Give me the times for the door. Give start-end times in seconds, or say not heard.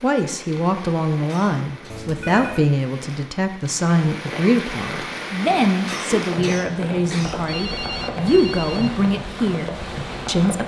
not heard.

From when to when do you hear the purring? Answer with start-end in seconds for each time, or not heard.
not heard.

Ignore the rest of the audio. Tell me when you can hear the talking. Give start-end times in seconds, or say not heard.
0.0-10.6.